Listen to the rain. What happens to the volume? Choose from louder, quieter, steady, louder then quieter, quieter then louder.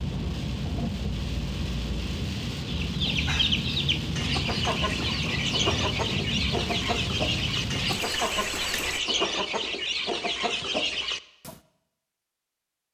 steady.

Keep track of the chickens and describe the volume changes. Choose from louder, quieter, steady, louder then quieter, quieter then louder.
steady.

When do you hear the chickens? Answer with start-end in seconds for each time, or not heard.
2.6-11.6.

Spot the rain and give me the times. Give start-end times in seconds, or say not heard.
0.0-9.0.